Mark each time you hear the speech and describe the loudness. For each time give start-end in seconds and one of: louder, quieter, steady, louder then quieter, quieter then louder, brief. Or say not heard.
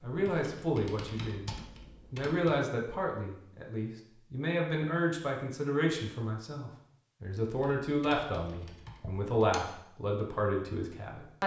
0.0-11.4 steady.